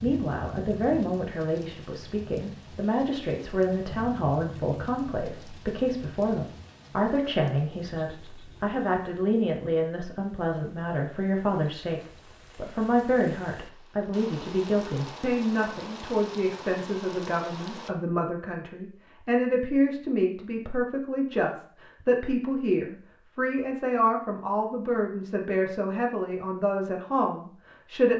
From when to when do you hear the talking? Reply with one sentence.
You can hear the talking from 0.0 to 28.1 s.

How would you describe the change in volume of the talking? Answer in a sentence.
The volume of the talking stays about the same.